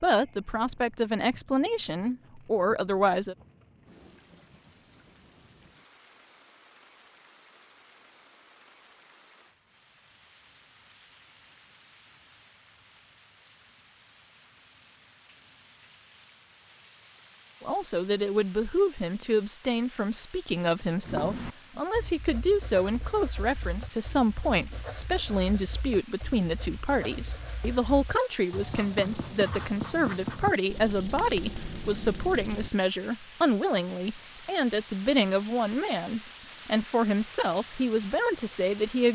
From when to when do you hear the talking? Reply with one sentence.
The talking can be heard from 0.0 to 3.4 s and from 17.6 to 39.0 s.